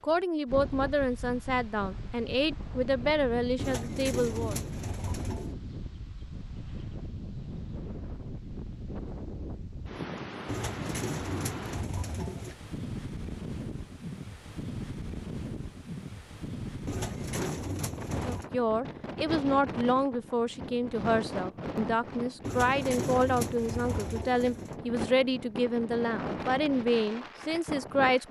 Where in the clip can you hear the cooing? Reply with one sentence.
The cooing can be heard from 3.5 to 5.5 s, from 10.4 to 12.6 s, from 16.9 to 18.5 s and from 22.4 to 24.8 s.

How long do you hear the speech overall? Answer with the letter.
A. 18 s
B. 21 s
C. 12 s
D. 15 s
D.